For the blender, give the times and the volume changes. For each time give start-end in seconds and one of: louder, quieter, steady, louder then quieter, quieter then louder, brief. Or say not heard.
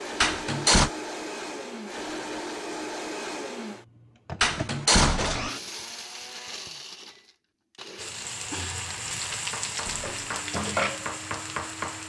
0.0-12.0 quieter.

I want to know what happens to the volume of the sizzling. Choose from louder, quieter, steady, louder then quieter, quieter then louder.
louder then quieter.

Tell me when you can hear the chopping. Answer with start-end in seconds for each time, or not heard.
9.4-12.0.